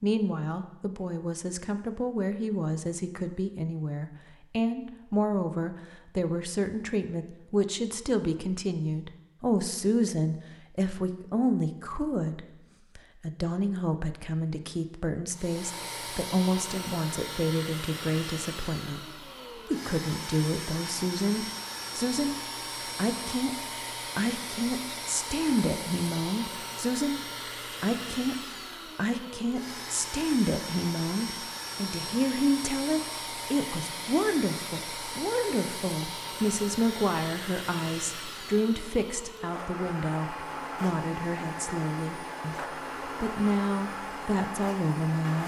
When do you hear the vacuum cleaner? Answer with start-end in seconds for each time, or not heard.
15.3-45.4.